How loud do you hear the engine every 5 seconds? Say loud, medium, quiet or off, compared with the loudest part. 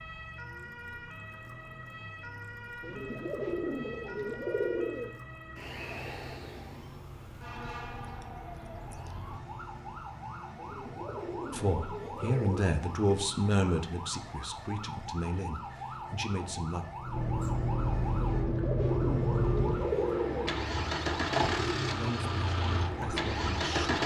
quiet, quiet, quiet, loud, loud.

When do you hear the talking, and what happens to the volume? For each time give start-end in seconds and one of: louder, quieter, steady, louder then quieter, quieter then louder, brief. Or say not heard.
11.5-16.9 quieter
21.9-24.0 brief.